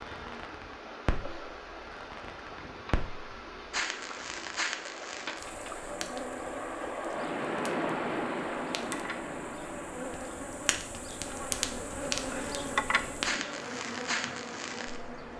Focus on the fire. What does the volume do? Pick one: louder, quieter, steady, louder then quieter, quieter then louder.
quieter then louder.